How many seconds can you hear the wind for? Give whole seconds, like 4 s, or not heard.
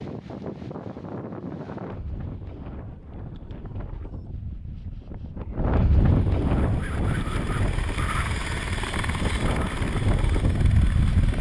11 s.